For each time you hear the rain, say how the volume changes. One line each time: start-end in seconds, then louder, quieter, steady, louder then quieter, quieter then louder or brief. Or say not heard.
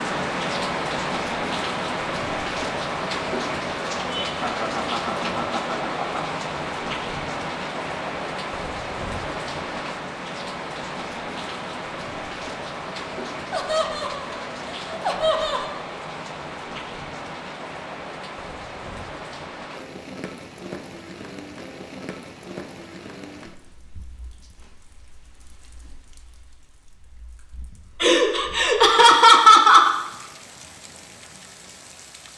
0.0-32.3 quieter.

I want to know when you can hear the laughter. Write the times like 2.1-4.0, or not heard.
4.0-6.4, 13.5-15.7, 28.0-29.9.